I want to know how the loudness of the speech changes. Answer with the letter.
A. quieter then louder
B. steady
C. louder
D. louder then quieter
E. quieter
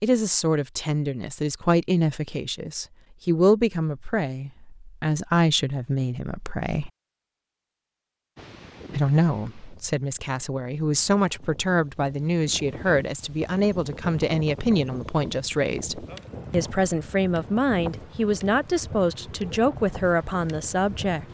B.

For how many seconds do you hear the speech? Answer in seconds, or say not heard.
19 s.